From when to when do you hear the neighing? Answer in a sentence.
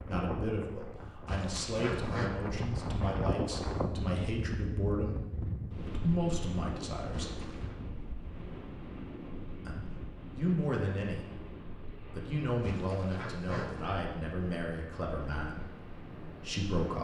You can hear the neighing from 1.2 to 2.3 s, from 7.1 to 7.8 s and from 12.6 to 13.9 s.